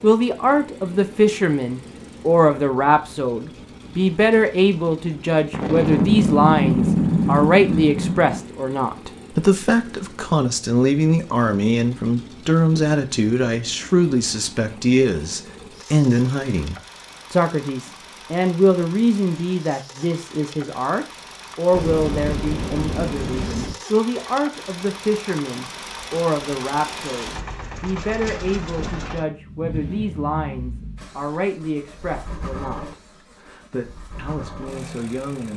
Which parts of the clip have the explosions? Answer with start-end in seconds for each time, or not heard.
5.5-8.4, 21.7-23.8.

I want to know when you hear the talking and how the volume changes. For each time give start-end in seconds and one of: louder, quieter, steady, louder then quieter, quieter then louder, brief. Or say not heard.
0.0-35.5 quieter.